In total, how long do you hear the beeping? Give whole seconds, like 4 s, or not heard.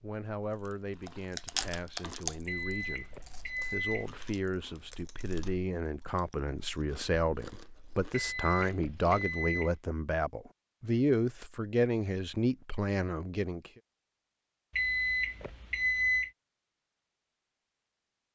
5 s.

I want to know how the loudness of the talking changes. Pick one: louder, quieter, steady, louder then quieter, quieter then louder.
louder.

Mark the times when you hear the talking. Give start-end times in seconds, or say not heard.
0.0-13.7.